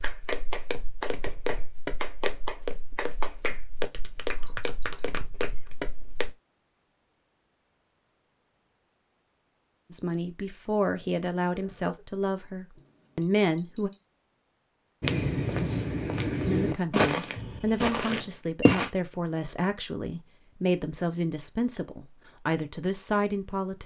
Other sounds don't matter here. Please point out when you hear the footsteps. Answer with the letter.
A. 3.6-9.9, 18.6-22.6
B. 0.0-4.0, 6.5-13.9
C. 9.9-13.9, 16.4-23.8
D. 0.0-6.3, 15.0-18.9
D.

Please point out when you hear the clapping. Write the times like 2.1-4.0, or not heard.
0.0-5.8.